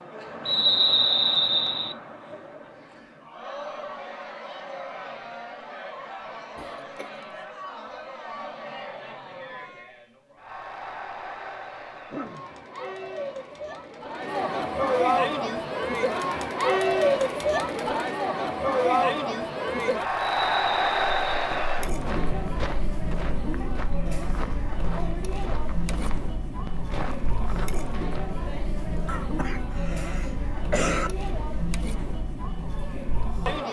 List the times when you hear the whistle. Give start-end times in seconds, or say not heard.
0.5-1.9, 20.1-21.5.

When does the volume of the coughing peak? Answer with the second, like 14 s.
31 s.